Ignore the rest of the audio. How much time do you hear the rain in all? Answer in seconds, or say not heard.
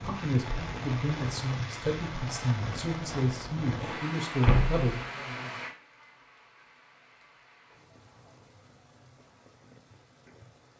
11 s.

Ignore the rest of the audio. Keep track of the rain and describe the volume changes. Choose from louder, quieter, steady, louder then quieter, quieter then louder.
quieter.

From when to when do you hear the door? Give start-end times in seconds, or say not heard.
4.2-4.9.